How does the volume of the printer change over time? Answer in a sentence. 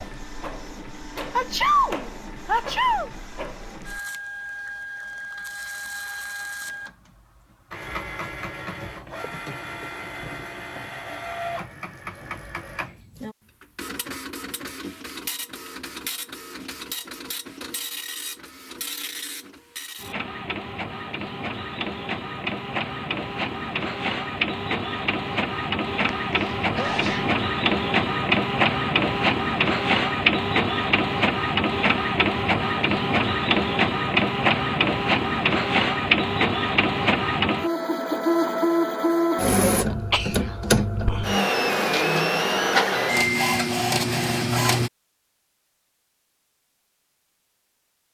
The loudness of the printer goes up.